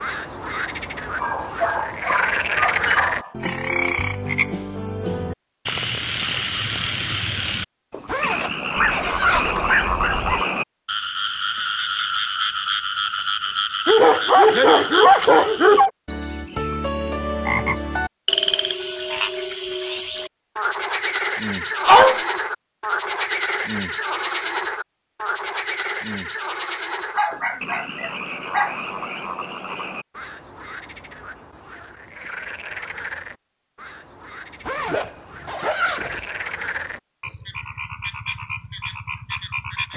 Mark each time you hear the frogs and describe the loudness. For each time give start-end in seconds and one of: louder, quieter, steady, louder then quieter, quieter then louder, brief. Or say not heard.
0.0-39.9 quieter.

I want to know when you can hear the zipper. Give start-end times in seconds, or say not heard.
8.1-9.8, 34.6-36.3.